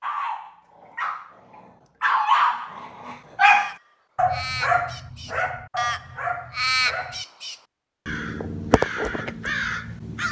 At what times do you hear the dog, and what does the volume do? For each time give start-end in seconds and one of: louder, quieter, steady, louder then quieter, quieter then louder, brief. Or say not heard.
0.0-7.2 louder then quieter.